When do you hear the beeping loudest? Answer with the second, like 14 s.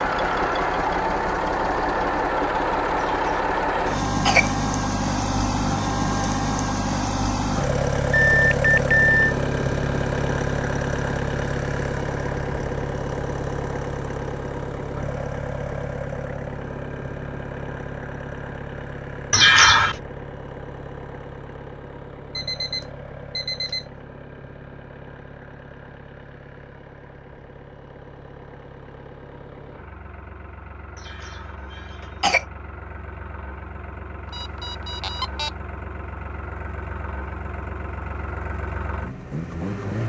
9 s.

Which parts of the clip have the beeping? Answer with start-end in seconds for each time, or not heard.
8.1-9.3, 22.4-23.9, 34.2-35.5.